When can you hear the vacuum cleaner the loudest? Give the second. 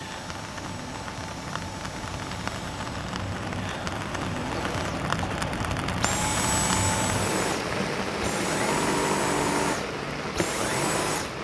9 s.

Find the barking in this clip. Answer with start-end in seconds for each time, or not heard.
not heard.